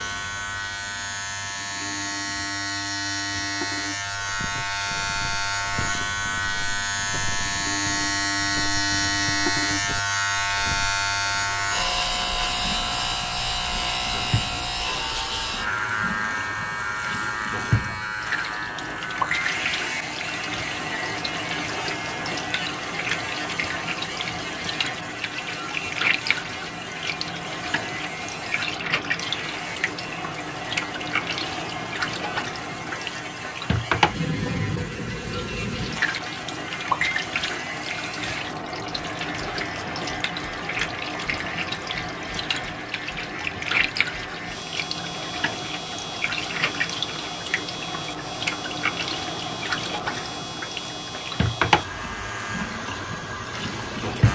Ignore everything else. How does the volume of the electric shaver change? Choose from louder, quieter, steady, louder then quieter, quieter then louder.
quieter.